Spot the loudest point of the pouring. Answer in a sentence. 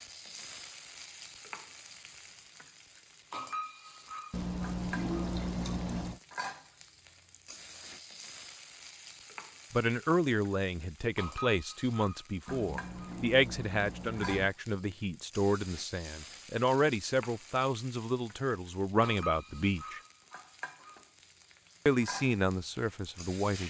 The loudest moment of the pouring is at 5 seconds.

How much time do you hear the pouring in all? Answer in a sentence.
You can hear the pouring for 4 seconds altogether.